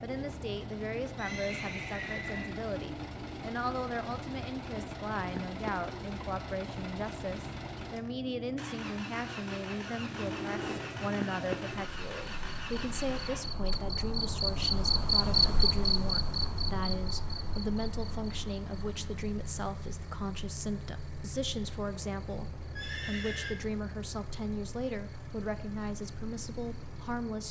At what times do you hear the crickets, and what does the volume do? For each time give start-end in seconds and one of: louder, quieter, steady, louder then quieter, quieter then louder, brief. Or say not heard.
0.0-27.4 louder then quieter.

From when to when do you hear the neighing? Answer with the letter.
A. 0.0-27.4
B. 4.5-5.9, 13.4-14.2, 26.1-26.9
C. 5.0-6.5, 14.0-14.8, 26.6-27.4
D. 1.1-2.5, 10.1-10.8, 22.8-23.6
D.